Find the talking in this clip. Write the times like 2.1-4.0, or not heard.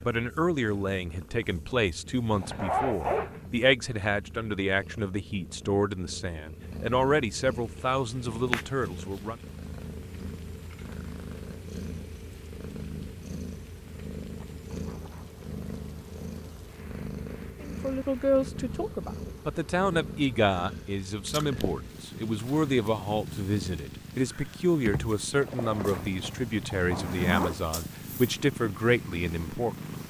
0.1-9.3, 17.6-29.8.